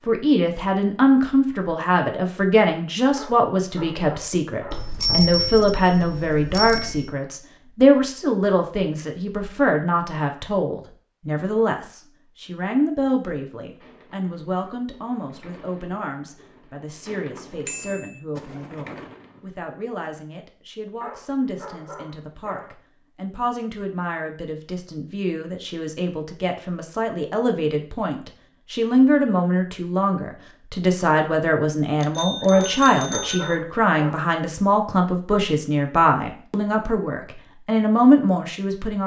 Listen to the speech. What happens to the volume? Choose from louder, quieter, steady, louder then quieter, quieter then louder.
quieter then louder.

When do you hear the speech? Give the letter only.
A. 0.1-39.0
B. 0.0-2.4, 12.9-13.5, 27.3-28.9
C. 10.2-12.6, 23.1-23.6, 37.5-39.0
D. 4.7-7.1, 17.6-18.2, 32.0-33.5
A.